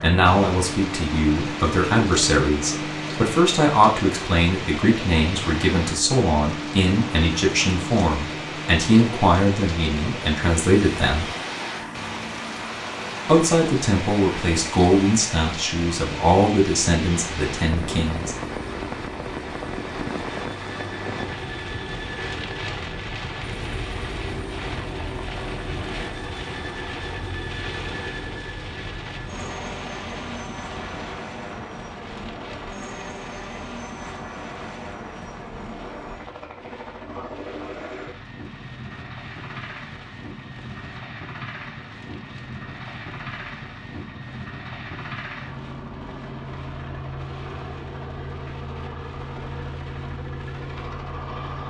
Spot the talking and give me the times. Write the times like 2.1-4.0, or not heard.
0.0-11.3, 13.2-18.4.